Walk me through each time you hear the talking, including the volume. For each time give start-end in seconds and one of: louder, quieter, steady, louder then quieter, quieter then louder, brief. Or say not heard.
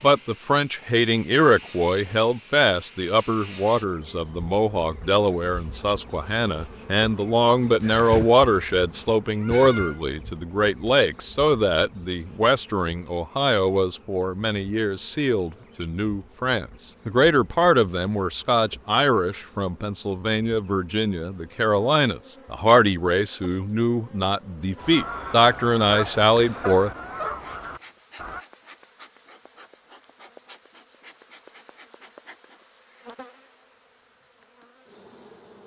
0.0-26.9 steady.